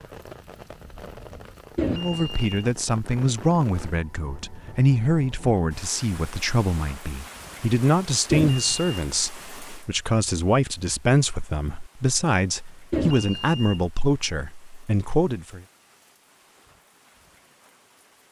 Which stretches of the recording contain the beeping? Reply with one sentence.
You can hear the beeping from 1.8 to 2.5 s, from 8.3 to 8.9 s and from 12.9 to 13.8 s.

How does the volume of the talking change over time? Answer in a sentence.
The loudness of the talking stays about the same.